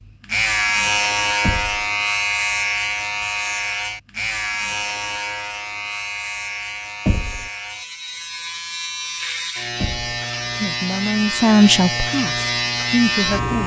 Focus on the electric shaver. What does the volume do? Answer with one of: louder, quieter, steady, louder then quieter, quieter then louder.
quieter then louder.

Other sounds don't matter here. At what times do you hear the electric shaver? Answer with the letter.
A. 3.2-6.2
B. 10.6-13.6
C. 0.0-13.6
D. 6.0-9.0
C.